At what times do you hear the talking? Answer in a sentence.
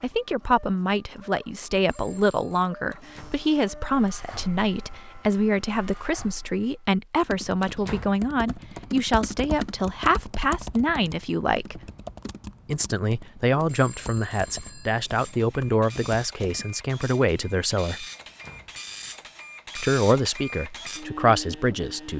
You can hear the talking from 0.0 to 11.8 s, from 12.7 to 18.1 s and from 19.8 to 22.1 s.